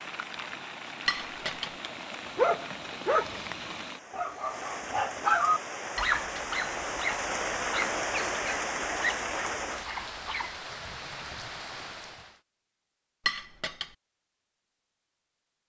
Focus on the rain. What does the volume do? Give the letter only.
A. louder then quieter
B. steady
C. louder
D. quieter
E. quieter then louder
A.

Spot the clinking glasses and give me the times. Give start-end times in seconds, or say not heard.
1.1-1.7, 6.0-6.6, 13.2-13.9.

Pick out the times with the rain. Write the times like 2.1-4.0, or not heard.
0.0-12.4.